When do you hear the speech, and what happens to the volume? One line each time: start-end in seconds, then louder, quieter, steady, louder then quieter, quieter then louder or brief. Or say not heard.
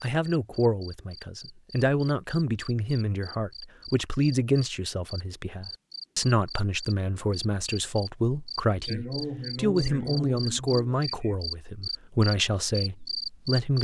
0.0-13.7 steady.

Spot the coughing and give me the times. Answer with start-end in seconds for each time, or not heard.
8.8-11.3.